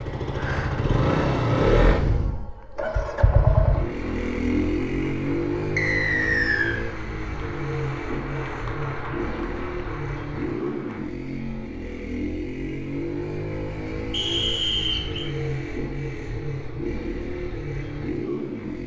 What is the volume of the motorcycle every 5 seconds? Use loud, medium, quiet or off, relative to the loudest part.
loud, medium, medium, medium.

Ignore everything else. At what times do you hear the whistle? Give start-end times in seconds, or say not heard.
5.8-6.8, 14.1-15.3.